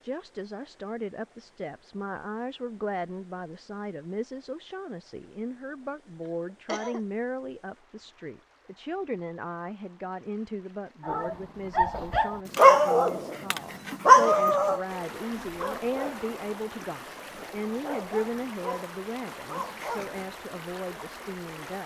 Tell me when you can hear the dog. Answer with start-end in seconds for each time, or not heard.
11.1-20.2.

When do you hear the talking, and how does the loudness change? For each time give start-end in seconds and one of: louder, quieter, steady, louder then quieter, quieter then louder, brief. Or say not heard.
0.0-21.8 steady.